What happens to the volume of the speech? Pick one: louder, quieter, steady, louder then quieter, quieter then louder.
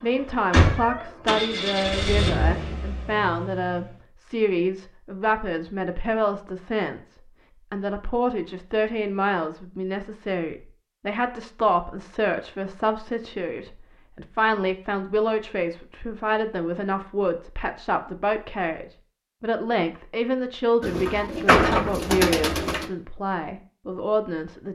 steady.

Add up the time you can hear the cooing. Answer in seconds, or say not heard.
2 s.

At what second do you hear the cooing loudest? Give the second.
22 s.